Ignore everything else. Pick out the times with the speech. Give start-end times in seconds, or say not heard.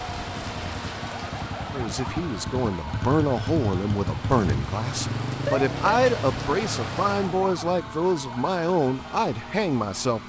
1.7-10.2.